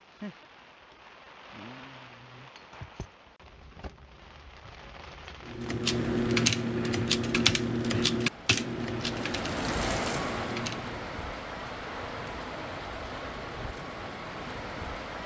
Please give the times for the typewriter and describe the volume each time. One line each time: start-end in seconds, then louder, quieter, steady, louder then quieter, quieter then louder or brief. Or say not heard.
5.5-11.1 quieter.